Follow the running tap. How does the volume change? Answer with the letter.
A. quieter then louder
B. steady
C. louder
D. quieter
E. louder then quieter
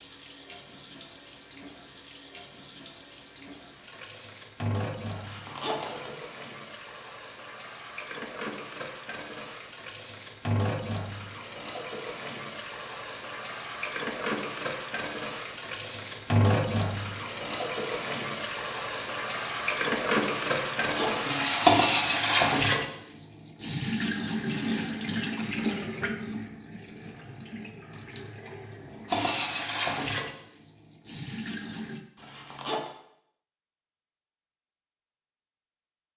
E.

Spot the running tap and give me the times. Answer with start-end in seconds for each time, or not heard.
0.0-32.0.